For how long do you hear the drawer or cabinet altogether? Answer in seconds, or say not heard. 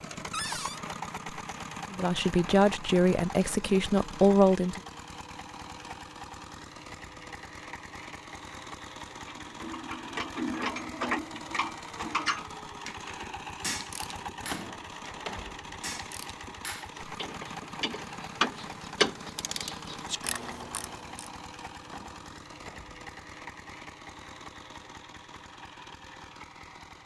3 s.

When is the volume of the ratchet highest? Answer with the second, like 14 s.
19 s.